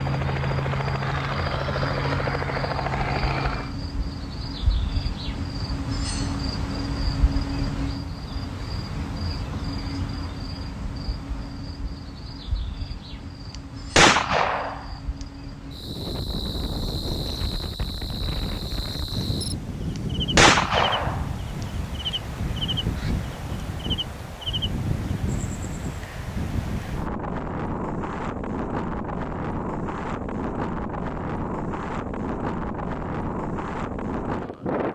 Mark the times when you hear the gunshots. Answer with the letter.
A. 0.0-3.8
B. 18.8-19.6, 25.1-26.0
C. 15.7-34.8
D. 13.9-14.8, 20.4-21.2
D.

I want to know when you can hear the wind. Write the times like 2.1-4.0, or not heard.
15.7-34.8.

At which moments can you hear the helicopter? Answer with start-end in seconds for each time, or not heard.
0.0-3.8.